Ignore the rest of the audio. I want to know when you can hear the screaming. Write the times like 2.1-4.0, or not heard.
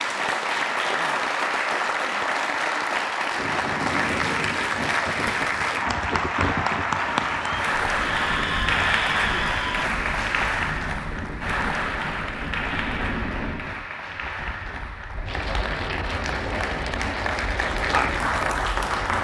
8.1-9.9.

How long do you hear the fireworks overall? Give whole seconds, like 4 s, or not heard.
not heard.